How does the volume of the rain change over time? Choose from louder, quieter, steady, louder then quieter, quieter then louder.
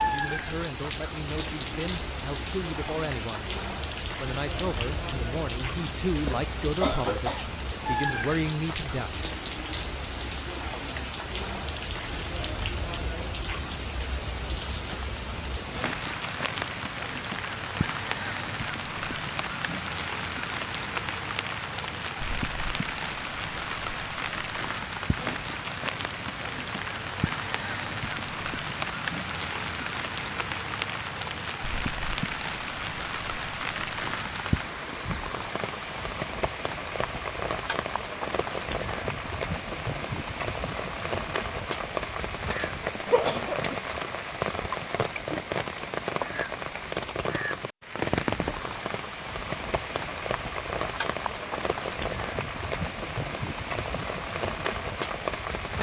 steady.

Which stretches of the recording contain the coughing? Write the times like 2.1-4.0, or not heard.
6.2-7.5, 43.0-43.8.